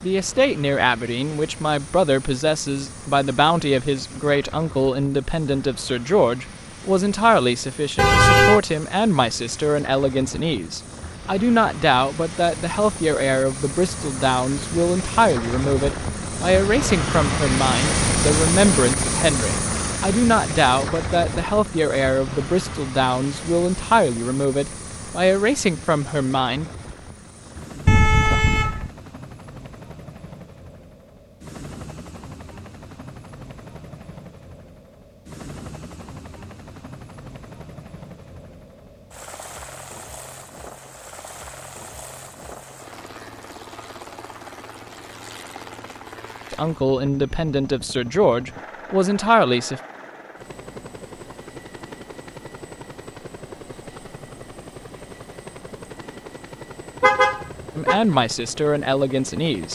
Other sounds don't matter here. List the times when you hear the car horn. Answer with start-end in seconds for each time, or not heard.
8.0-8.6, 27.9-28.9, 57.0-58.0.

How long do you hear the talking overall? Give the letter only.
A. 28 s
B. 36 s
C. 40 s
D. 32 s
D.